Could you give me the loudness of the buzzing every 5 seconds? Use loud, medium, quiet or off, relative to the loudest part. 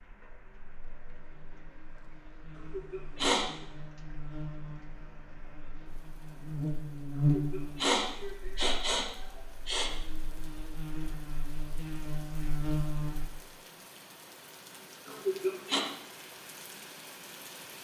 quiet, loud, loud, off.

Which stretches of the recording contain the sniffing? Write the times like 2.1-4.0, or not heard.
2.5-3.5, 7.3-9.9, 15.1-15.8.